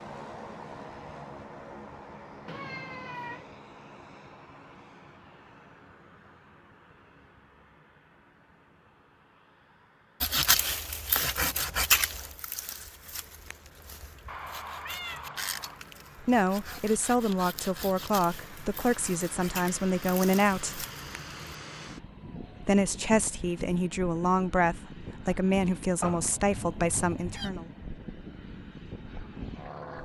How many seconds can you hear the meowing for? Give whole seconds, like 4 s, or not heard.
4 s.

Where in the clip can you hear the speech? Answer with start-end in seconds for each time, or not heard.
16.2-20.9, 22.6-27.6.